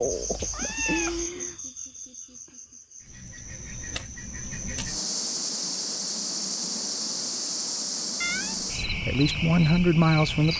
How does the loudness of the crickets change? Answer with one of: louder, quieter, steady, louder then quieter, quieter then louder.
quieter then louder.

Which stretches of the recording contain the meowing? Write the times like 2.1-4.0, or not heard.
0.1-1.3, 8.2-8.7.